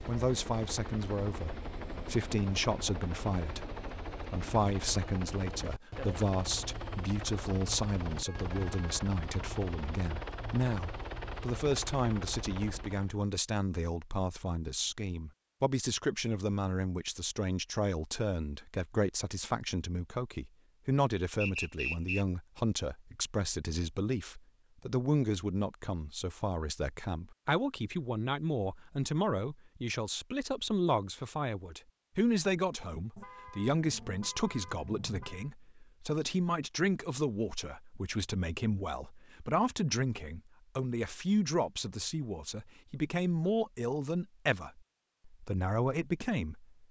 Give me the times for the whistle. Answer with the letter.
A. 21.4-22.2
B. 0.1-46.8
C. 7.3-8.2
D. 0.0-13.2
A.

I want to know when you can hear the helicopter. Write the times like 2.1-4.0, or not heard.
0.0-13.2.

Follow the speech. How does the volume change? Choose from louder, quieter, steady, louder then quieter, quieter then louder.
steady.